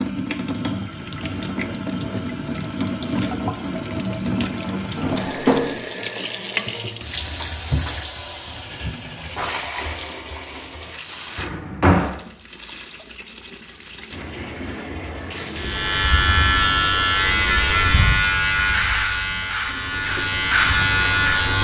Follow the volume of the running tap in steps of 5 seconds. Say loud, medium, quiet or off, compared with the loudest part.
loud, loud, medium, medium, medium.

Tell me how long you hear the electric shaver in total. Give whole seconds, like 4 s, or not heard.
6 s.